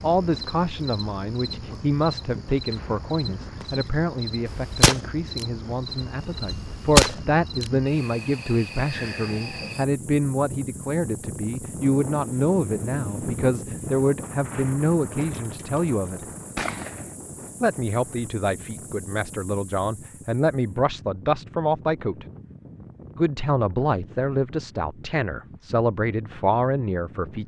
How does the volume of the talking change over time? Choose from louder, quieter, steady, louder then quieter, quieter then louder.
steady.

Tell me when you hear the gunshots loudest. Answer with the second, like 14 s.
7 s.